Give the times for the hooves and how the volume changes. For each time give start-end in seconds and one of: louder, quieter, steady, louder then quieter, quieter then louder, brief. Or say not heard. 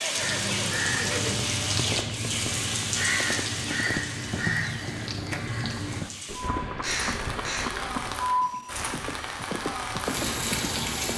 0.0-10.8 steady.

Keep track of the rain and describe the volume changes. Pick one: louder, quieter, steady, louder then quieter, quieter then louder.
quieter then louder.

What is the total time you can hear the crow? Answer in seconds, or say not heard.
8 s.